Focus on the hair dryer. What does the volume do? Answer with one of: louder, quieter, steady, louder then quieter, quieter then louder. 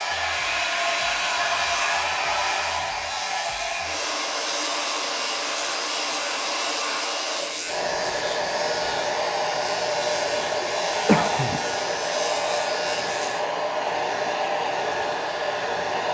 steady.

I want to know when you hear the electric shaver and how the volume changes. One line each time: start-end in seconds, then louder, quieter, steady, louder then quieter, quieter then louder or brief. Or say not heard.
0.0-13.4 steady.